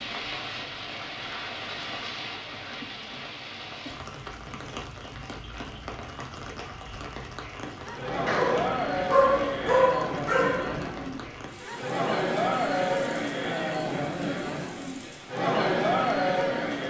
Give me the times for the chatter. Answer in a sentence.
The chatter can be heard from 7.7 to 16.8 s.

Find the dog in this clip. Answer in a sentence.
The dog can be heard from 8.2 to 10.8 s.